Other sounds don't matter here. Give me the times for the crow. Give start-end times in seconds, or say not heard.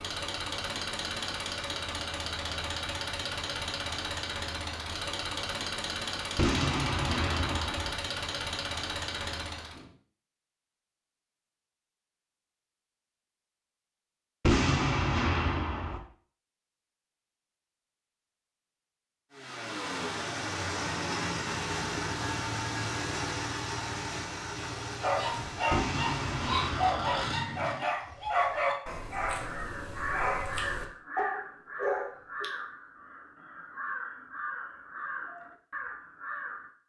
29.2-36.8.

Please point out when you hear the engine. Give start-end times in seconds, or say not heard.
0.0-9.9, 19.3-27.9.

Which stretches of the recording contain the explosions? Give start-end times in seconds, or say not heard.
6.3-8.0, 14.4-16.0, 25.7-27.2.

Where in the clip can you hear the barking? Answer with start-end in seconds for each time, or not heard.
25.0-32.5.